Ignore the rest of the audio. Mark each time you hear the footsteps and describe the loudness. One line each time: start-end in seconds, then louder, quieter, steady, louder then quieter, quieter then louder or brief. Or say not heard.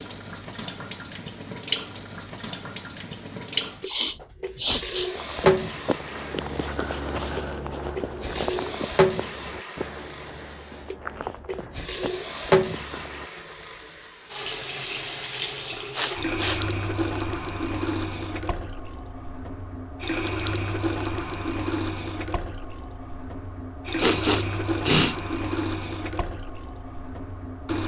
5.2-13.3 quieter.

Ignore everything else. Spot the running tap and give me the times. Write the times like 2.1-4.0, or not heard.
0.0-27.8.